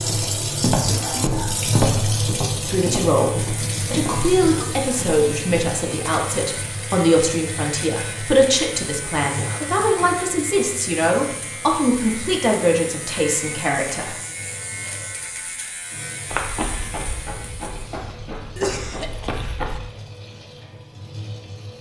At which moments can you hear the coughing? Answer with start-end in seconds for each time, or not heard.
0.8-1.6, 9.2-10.2, 18.6-19.3.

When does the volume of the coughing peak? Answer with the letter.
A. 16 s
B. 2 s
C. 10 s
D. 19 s
D.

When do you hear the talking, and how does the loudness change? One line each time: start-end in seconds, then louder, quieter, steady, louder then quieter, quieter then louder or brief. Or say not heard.
2.6-14.2 steady.